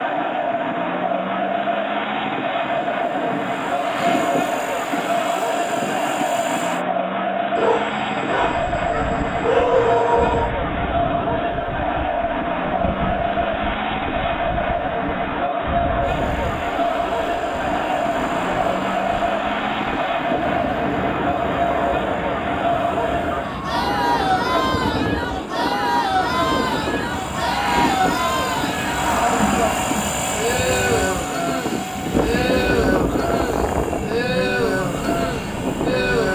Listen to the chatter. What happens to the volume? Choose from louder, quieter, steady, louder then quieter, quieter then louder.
steady.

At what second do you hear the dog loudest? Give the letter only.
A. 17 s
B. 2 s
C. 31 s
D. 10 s
D.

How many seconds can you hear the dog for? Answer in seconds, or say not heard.
3 s.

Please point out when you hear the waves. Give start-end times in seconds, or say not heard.
8.4-36.2.